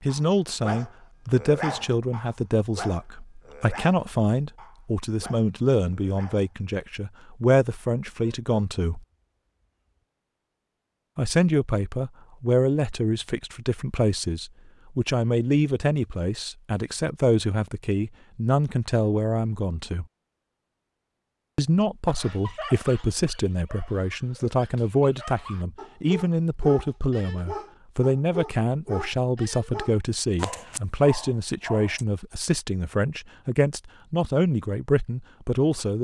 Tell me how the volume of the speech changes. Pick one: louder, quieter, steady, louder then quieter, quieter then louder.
steady.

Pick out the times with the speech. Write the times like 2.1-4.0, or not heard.
0.0-9.0, 11.2-20.1, 21.6-35.9.